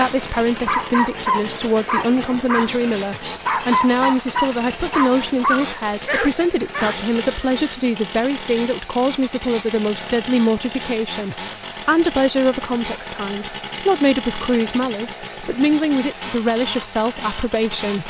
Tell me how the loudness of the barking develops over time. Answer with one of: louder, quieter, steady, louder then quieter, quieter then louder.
steady.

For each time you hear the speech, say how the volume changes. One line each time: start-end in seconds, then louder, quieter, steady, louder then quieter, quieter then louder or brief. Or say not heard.
0.0-18.0 steady.